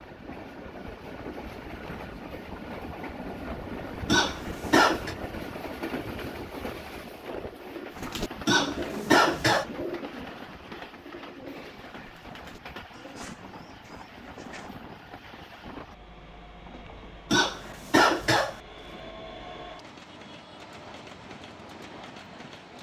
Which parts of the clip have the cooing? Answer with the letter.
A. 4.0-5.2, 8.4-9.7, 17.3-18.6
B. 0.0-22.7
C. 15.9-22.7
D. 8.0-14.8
D.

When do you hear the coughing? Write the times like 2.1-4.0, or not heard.
4.0-5.2, 8.4-9.7, 17.3-18.6.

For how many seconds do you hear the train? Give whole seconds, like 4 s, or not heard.
23 s.